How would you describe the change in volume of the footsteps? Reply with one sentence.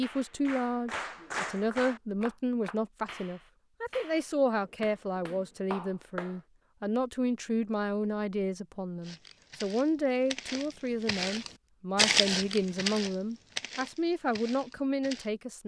The loudness of the footsteps goes up, then down.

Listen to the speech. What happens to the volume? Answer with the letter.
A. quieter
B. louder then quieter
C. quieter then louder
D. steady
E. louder
D.